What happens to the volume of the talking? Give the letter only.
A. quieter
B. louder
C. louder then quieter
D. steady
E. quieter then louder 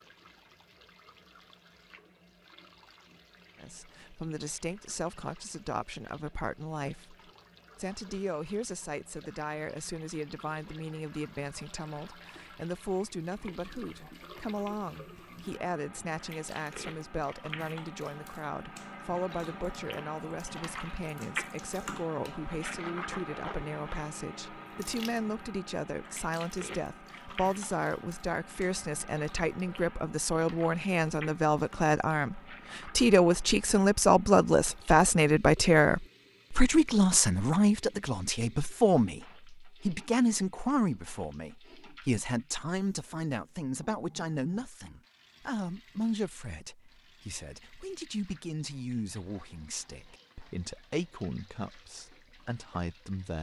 C.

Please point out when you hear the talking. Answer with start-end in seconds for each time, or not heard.
3.5-7.2, 7.8-53.3.